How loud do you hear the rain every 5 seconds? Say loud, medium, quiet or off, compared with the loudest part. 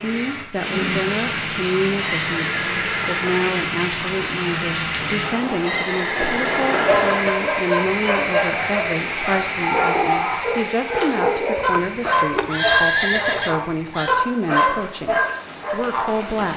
loud, loud, medium, medium.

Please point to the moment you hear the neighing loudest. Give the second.
13 s.